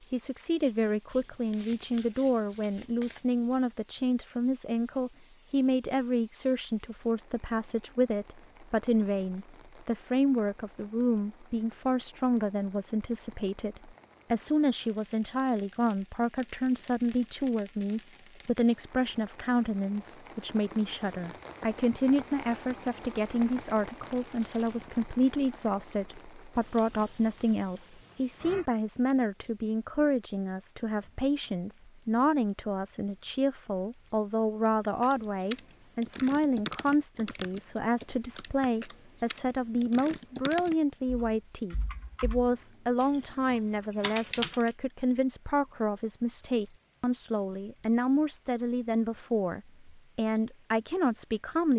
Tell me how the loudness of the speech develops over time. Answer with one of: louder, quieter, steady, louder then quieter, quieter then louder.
steady.